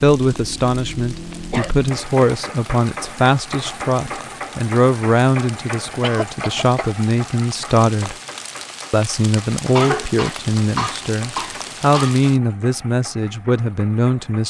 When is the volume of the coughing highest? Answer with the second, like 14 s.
10 s.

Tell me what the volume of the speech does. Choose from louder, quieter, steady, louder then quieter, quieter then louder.
steady.